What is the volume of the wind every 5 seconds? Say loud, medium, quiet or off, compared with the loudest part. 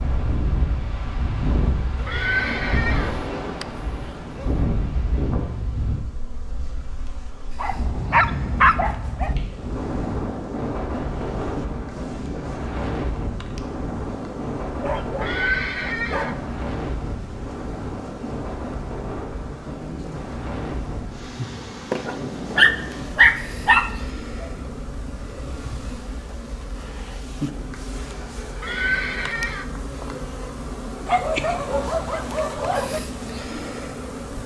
loud, loud, loud, loud, medium, quiet, medium.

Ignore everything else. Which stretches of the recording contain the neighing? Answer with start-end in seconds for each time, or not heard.
2.0-3.1, 15.2-16.4, 28.6-29.6.